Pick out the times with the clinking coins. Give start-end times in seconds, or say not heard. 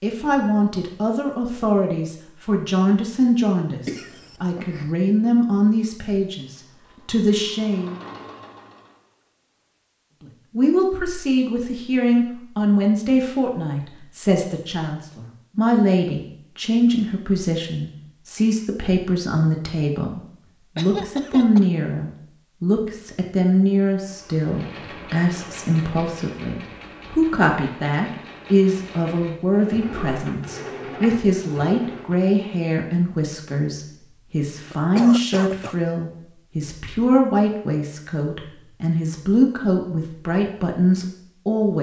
not heard.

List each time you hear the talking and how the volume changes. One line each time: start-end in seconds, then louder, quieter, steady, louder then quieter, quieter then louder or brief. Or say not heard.
0.0-8.0 steady
10.6-41.7 steady.